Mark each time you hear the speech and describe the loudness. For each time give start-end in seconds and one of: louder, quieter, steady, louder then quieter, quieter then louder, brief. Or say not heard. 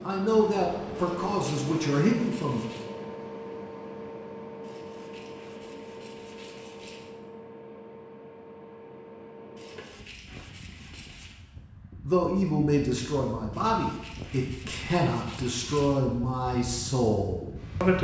0.0-2.6 brief
12.0-17.9 steady.